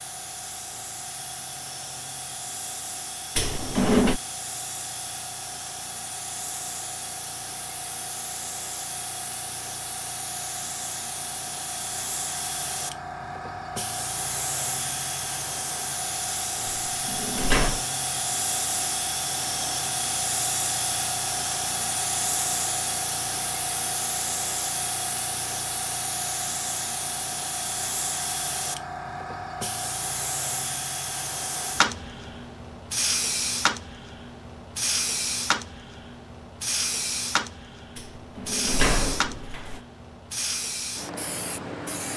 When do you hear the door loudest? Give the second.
4 s.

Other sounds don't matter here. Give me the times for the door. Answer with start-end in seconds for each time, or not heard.
3.4-4.2, 16.6-17.8, 38.0-39.8.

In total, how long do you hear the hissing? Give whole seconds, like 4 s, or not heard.
42 s.